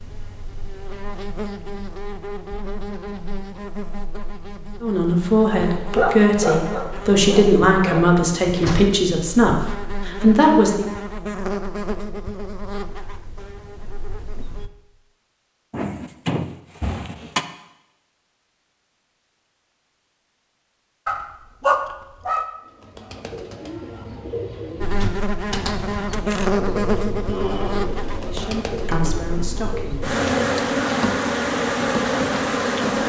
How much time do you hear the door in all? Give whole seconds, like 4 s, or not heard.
3 s.